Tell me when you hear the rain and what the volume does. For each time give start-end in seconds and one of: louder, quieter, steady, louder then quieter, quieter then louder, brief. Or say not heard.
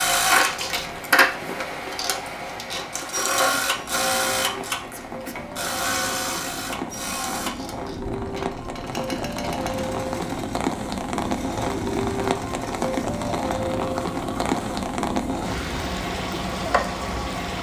0.0-17.5 louder.